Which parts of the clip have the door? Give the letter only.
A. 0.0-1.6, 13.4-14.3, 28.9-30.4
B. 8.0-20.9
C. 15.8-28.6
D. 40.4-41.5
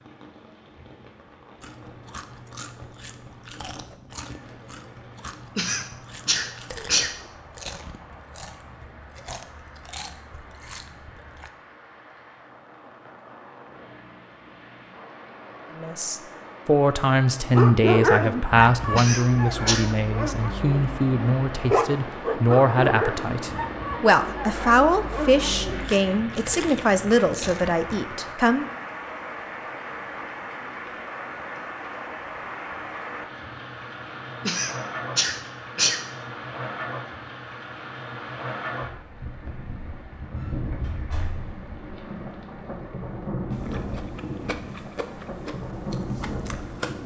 D.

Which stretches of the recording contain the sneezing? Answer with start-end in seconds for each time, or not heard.
5.5-7.2, 18.9-19.9, 34.4-36.0.